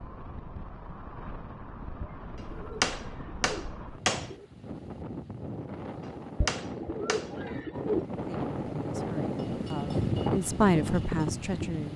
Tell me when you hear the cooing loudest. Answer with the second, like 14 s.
8 s.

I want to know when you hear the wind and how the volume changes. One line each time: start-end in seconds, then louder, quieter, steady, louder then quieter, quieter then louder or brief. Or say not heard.
0.0-11.9 louder.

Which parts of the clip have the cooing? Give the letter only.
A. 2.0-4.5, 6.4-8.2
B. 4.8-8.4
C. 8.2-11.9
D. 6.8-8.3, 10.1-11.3
A.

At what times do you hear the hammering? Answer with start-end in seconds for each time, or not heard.
2.8-4.3, 6.0-7.3.